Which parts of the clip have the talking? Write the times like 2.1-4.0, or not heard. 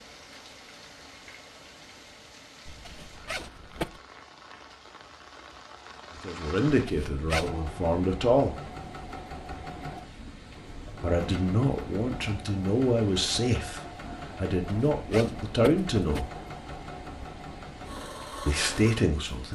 6.2-8.6, 11.0-16.3, 18.4-19.5.